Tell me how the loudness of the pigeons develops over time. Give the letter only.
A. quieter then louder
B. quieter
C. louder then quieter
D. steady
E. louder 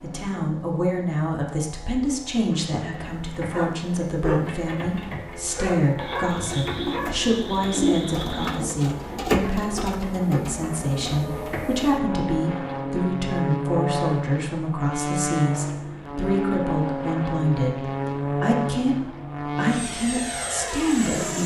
C.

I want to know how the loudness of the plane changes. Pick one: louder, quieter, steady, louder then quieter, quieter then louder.
louder.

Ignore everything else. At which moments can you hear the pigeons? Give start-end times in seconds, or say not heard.
2.3-11.7.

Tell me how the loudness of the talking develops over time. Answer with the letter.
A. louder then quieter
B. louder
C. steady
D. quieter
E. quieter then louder
C.